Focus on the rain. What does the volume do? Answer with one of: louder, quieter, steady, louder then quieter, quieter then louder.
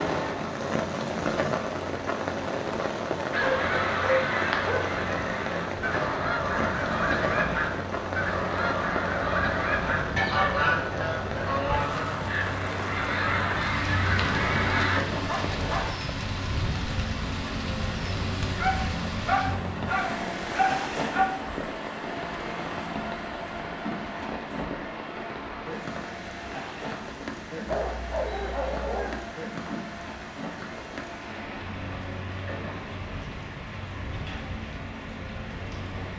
quieter.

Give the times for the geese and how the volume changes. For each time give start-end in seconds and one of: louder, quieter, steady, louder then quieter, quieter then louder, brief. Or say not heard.
3.3-15.0 steady.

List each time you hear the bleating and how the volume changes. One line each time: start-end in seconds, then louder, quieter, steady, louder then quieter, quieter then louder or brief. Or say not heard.
not heard.